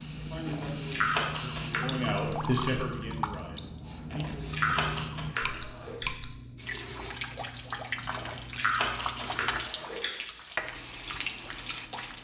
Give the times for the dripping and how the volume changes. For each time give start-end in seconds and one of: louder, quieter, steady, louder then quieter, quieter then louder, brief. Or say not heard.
0.0-12.1 steady.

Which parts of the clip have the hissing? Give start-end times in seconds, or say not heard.
0.0-1.8, 3.9-12.1.